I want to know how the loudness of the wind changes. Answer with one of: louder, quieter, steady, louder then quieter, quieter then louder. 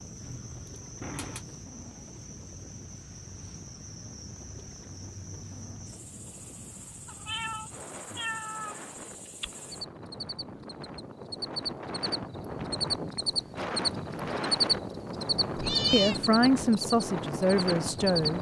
louder.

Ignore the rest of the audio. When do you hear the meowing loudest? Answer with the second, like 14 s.
16 s.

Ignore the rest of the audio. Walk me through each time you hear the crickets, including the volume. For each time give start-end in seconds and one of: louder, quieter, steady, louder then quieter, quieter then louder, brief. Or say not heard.
0.0-18.3 louder.